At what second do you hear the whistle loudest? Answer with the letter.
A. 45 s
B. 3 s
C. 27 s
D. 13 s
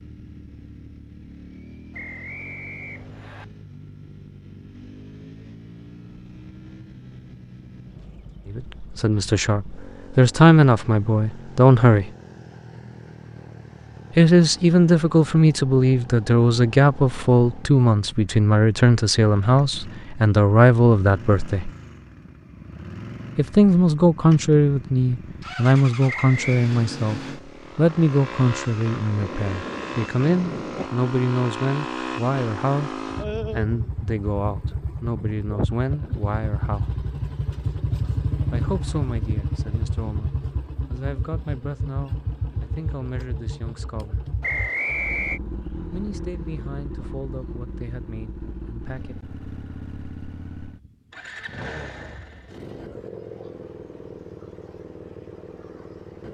A.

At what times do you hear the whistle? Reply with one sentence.
The whistle can be heard from 1.9 to 3.5 s, from 26.1 to 26.7 s and from 44.4 to 45.4 s.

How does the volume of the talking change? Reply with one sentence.
The loudness of the talking goes down.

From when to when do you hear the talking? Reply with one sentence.
You can hear the talking from 8.5 to 12.1 s, from 14.2 to 21.7 s, from 23.4 to 37.0 s, from 38.5 to 44.2 s and from 45.9 to 49.2 s.